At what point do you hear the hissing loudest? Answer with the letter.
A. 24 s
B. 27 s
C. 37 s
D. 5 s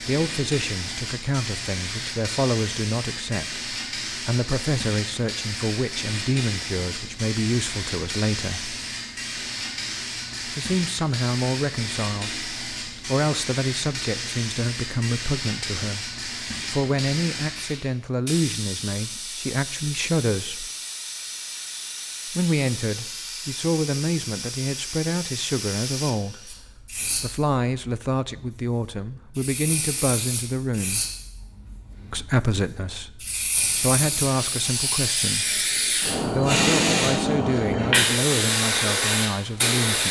C.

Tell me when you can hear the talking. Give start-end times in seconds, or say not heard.
0.0-8.8, 10.4-20.7, 22.3-31.0, 32.1-40.0.